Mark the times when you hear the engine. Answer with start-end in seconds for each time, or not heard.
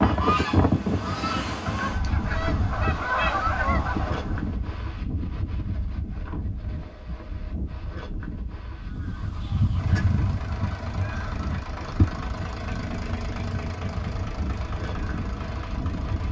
9.8-16.2.